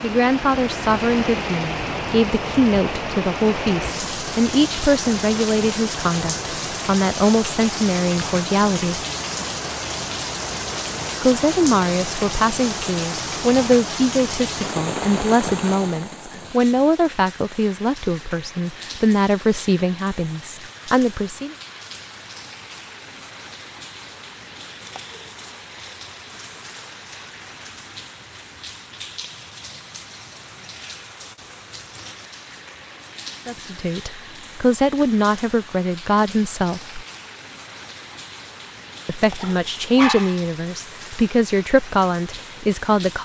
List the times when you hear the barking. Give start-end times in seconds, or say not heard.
39.4-40.5.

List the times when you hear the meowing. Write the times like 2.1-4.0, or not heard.
not heard.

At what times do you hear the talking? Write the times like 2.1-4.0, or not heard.
0.0-9.0, 11.2-21.6, 33.5-37.0, 39.0-43.2.